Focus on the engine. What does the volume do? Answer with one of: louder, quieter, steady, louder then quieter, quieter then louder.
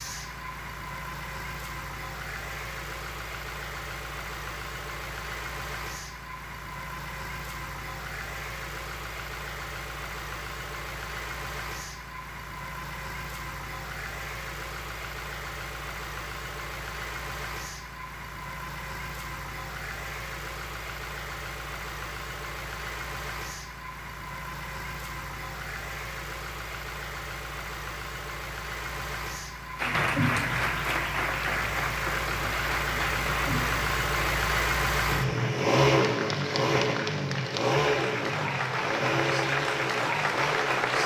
louder.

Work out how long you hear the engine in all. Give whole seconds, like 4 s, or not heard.
41 s.